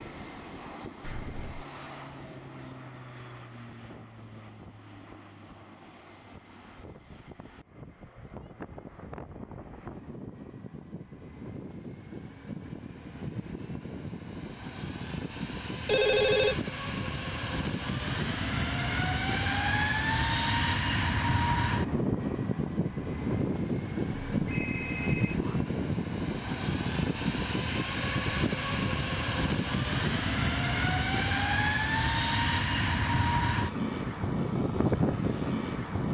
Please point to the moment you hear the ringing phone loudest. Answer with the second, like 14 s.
16 s.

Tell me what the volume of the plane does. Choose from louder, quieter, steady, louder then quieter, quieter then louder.
louder.